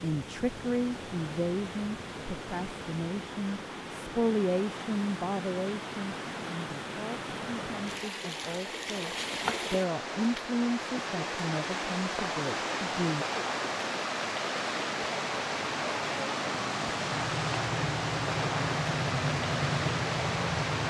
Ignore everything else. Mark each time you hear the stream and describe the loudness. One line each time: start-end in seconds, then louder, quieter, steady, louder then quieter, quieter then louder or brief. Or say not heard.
0.0-20.8 louder.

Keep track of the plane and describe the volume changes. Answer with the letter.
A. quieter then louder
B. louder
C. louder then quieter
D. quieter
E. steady
B.